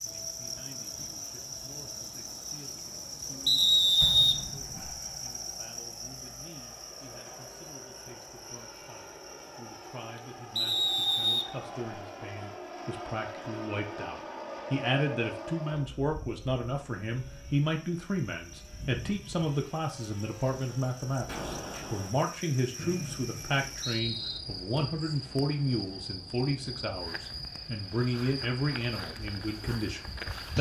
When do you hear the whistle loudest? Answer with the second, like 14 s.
4 s.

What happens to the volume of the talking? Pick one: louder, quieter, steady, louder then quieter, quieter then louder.
louder.